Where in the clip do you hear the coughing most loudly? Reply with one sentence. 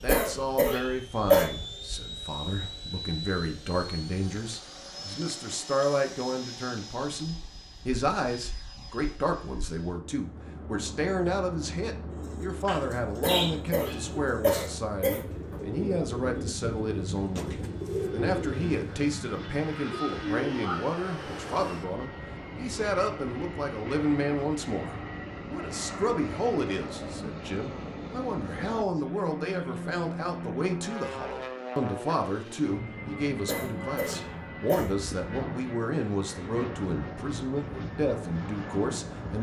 The volume of the coughing peaks at 1 second.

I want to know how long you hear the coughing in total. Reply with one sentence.
You can hear the coughing for 5 seconds altogether.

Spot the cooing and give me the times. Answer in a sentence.
The cooing can be heard from 12.1 to 20.9 s.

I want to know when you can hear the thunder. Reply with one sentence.
The thunder can't be heard in this clip.